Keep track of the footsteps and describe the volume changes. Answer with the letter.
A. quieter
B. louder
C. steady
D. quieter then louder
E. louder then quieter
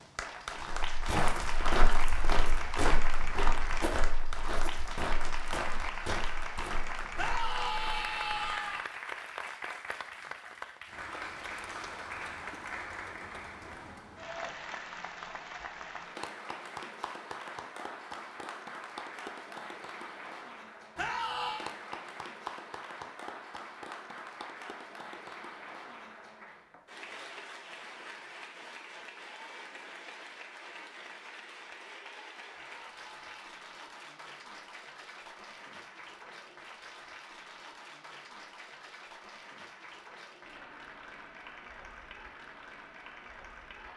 A.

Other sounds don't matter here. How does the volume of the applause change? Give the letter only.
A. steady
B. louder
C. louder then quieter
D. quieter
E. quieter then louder
D.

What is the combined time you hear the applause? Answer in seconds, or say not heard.
44 s.